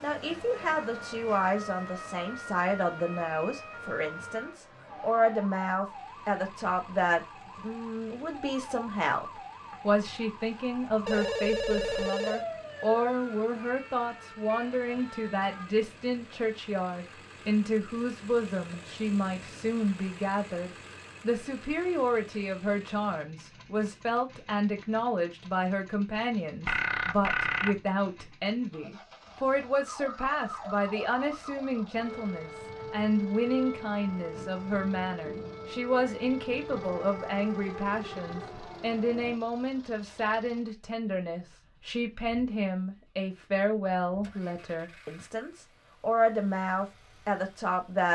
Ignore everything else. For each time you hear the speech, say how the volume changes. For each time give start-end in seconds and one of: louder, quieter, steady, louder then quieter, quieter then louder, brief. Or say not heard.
0.0-48.1 steady.